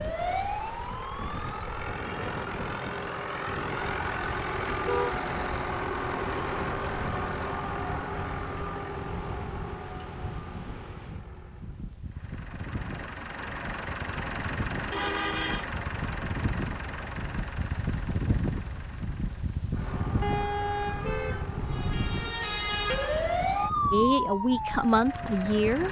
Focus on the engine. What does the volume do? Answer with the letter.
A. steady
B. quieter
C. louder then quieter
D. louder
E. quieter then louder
B.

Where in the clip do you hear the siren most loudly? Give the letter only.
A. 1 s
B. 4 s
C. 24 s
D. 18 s
C.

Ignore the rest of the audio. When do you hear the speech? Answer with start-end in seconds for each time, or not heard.
23.9-25.8.